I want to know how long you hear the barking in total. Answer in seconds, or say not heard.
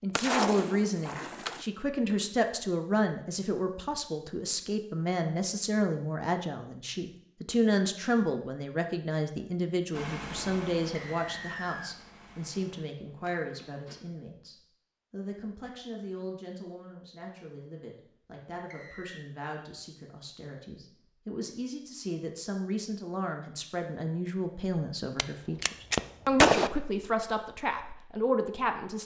not heard.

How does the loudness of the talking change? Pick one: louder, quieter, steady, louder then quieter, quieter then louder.
quieter then louder.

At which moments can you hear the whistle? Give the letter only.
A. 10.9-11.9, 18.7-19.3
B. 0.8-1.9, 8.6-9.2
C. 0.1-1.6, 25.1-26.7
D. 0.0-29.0
A.